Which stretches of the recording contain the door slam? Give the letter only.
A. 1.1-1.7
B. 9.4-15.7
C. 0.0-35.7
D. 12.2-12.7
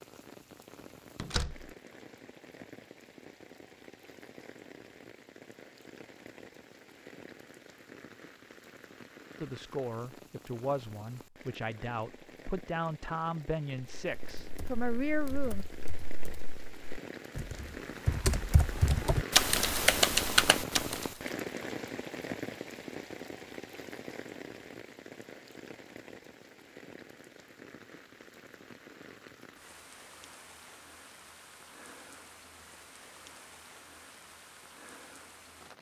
A.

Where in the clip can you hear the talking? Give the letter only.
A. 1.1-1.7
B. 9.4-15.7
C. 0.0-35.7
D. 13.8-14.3
B.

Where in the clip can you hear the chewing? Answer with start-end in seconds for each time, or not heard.
not heard.